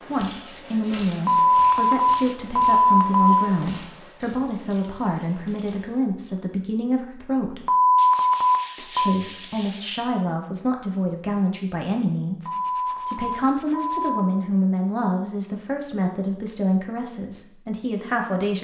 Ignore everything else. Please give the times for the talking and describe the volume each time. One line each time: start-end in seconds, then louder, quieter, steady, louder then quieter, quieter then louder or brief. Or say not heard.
0.1-7.7 steady
8.8-18.6 steady.